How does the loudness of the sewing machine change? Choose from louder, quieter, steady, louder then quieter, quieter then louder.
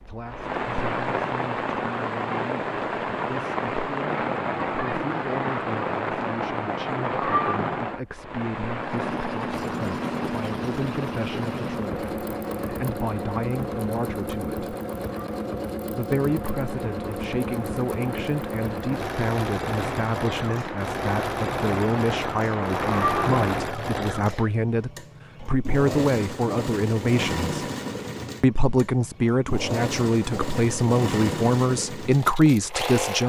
steady.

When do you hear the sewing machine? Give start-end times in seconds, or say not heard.
8.8-33.2.